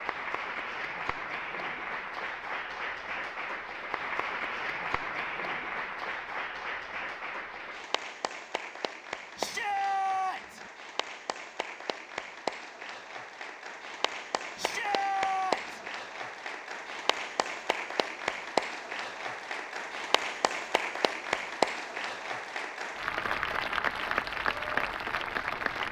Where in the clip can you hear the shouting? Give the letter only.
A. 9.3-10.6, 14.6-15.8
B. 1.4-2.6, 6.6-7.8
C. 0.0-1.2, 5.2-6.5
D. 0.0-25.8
A.